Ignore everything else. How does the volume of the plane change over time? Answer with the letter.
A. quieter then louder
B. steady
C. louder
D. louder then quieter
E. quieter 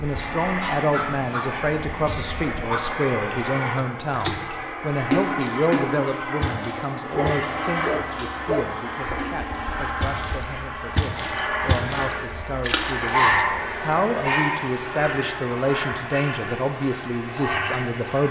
B.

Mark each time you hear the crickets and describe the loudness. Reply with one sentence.
You can hear the crickets from 7.3 to 18.2 s, at a steady volume.